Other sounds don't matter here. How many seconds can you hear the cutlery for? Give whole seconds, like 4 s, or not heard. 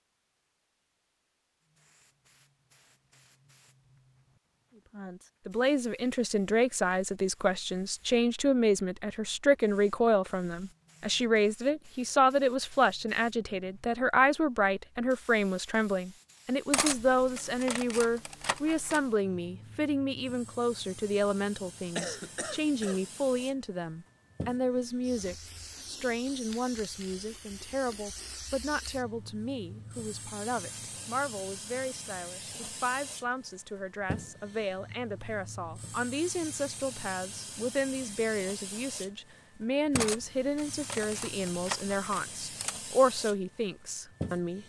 5 s.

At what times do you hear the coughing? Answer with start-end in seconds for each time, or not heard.
21.9-23.0.